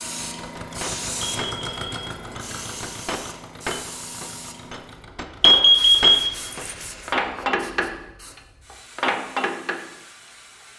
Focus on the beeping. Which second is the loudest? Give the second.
6 s.